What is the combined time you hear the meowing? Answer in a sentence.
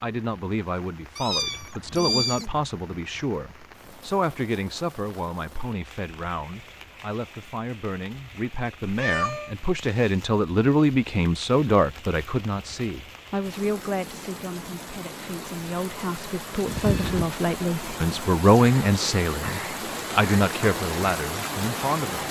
The meowing can be heard for 3 seconds in total.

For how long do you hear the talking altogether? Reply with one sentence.
The talking can be heard for 22 seconds in total.